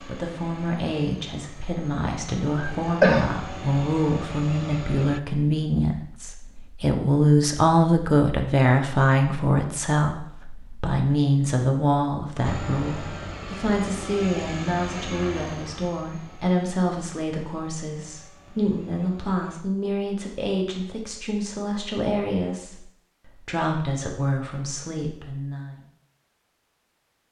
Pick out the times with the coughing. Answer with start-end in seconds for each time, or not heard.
2.5-3.3.